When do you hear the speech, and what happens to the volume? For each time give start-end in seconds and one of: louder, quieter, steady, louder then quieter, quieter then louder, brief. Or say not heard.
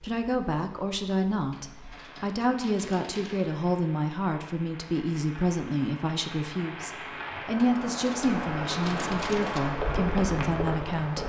0.0-11.2 steady.